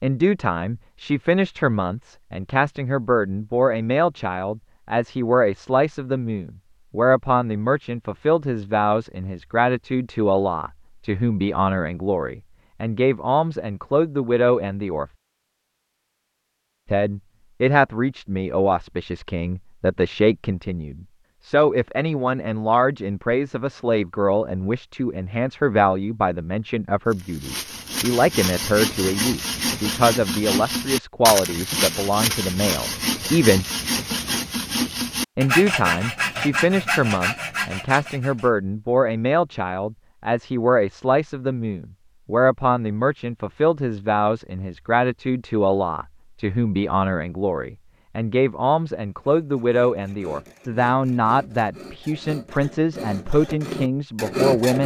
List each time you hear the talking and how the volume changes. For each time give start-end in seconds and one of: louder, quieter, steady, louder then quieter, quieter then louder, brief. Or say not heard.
0.0-15.1 steady
16.9-33.6 steady
35.4-54.8 steady.